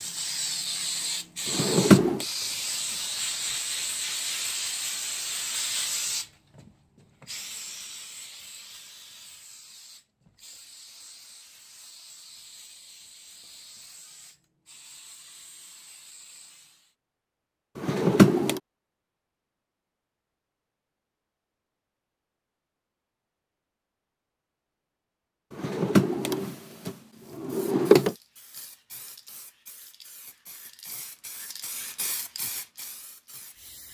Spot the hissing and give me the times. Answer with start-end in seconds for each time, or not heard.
0.0-16.9, 27.4-33.8.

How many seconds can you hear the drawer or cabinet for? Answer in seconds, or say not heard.
4 s.